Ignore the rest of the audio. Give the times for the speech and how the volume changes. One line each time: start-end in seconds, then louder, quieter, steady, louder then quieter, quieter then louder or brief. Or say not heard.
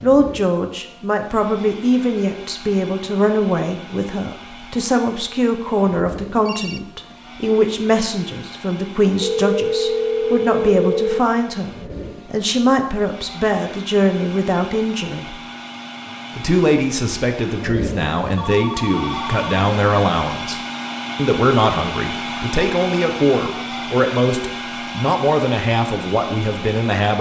0.0-15.4 steady
16.4-27.1 steady.